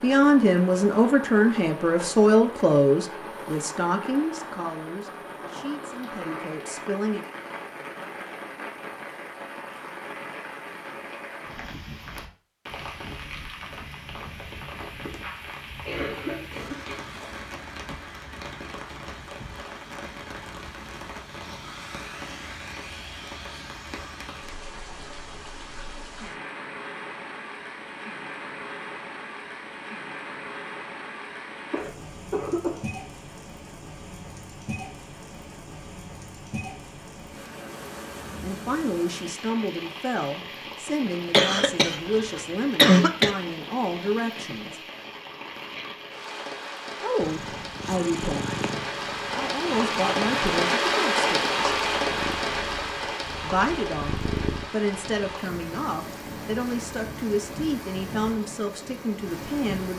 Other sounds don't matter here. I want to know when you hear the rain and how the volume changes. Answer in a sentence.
You can hear the rain from 0.0 to 59.9 s, getting louder.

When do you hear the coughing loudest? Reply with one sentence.
The volume of the coughing peaks at 43 seconds.